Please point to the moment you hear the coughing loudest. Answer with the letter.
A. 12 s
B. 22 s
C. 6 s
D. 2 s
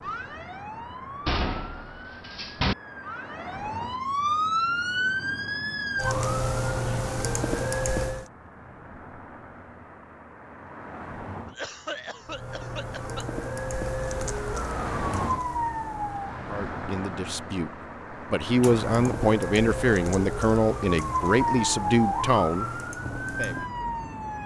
A.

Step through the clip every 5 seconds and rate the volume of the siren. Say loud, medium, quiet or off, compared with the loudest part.
loud, loud, medium, loud, loud.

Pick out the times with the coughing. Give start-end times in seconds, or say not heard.
11.4-13.2.